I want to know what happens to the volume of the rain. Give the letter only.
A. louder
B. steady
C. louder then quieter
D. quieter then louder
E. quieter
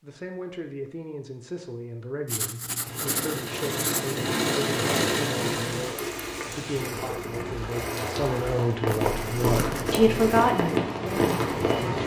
A.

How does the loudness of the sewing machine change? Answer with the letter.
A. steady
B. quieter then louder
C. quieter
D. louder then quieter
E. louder
C.